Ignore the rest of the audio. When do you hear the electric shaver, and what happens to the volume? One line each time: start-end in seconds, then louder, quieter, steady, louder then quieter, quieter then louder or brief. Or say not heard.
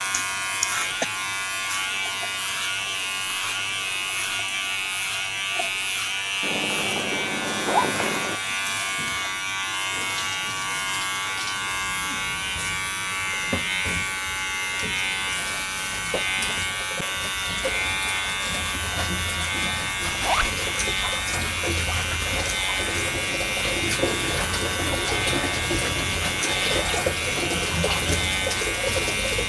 0.0-29.4 steady.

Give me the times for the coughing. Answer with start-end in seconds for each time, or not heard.
0.1-1.1.